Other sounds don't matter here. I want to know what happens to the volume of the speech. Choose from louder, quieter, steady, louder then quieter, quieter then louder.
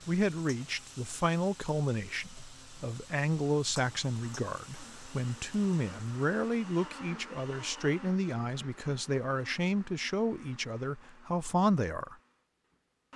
steady.